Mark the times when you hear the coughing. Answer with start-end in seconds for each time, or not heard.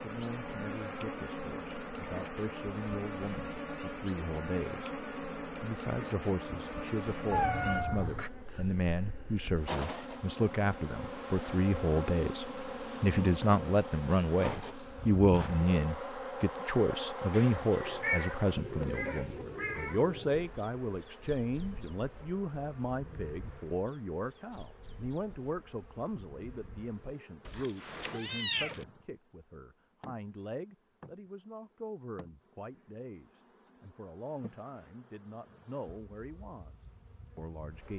not heard.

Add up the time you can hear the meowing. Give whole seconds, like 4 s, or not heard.
5 s.